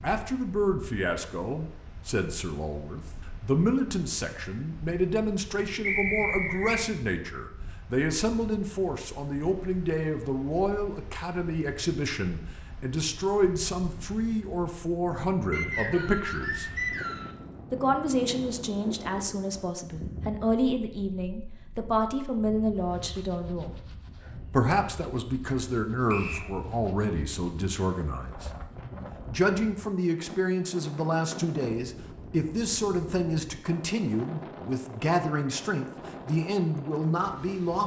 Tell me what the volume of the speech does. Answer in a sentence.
The loudness of the speech stays about the same.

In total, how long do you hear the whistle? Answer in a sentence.
You can hear the whistle for 3 seconds altogether.